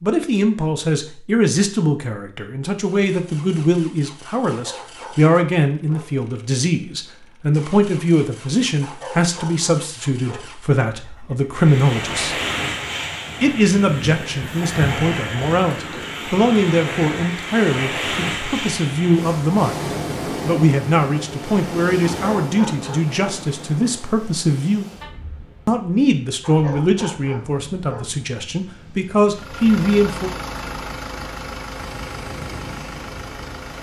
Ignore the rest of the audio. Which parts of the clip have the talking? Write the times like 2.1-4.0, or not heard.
0.0-12.3, 13.4-24.9, 25.6-30.3.